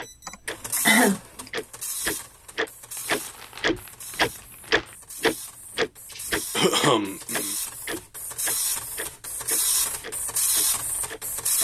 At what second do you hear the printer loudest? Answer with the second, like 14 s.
10 s.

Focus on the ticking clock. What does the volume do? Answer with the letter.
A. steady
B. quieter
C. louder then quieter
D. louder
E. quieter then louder
C.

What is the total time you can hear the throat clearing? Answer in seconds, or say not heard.
3 s.